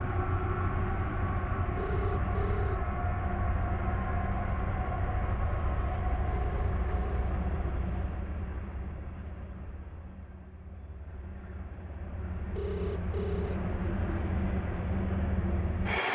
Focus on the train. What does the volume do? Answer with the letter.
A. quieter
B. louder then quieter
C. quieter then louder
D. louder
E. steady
C.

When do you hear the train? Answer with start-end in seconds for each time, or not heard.
0.0-16.1.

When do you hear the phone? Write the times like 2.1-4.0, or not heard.
1.8-3.0, 6.3-7.5, 12.6-13.7.